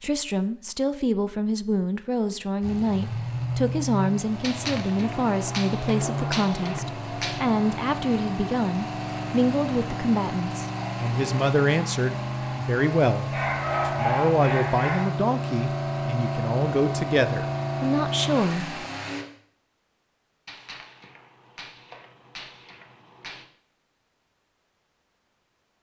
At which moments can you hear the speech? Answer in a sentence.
The speech can be heard from 0.0 to 18.8 s.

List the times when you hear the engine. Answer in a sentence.
The engine can be heard from 2.6 to 19.2 s.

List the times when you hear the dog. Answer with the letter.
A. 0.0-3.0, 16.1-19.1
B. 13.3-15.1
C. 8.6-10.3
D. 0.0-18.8
B.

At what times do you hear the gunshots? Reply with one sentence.
The gunshots can be heard from 4.4 to 7.5 s and from 20.4 to 23.4 s.